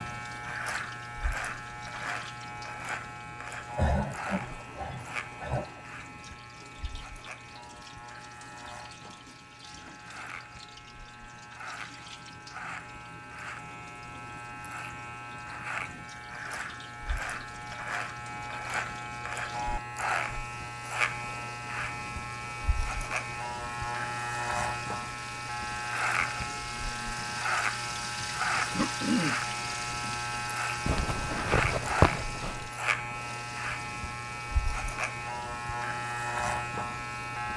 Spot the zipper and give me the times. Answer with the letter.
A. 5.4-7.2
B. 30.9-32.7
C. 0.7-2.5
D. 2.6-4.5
B.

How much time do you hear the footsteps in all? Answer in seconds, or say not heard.
not heard.